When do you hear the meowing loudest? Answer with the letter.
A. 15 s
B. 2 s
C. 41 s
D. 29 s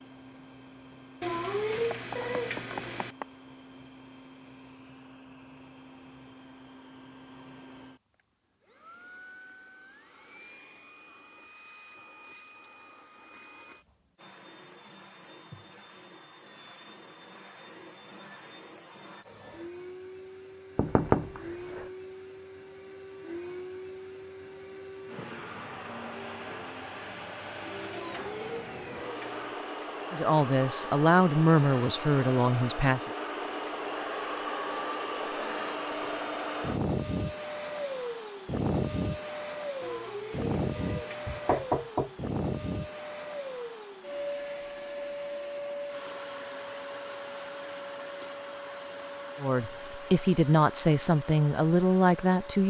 B.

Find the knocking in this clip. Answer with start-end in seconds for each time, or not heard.
1.9-3.2, 20.8-21.9, 41.2-42.1.